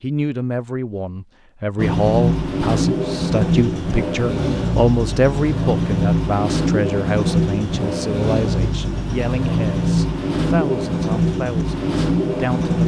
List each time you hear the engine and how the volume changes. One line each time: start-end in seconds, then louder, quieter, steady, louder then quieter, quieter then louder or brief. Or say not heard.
1.8-12.8 steady.